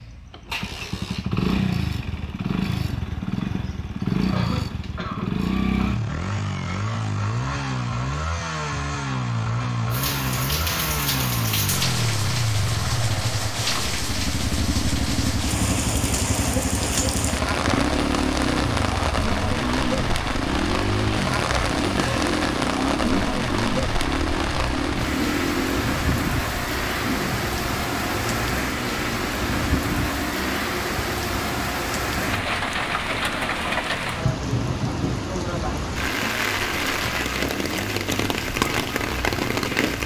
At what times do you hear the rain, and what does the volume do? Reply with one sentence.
You can hear the rain from 9.9 to 40.0 s, at a steady volume.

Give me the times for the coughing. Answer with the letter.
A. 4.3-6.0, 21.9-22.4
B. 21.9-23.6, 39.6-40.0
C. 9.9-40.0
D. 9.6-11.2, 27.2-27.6
A.